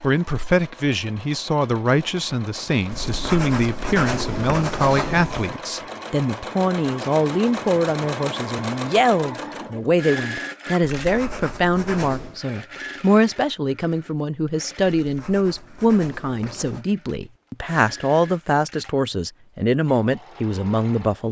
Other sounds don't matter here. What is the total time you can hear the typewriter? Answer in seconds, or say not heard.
not heard.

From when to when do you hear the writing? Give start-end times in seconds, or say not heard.
2.9-5.5, 10.9-12.4, 14.8-16.9.